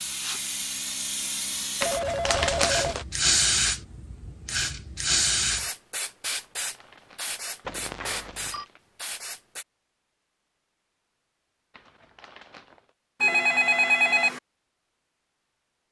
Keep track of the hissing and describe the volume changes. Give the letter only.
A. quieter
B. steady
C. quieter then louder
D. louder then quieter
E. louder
D.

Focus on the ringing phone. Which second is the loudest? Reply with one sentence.
The volume of the ringing phone peaks at 14 seconds.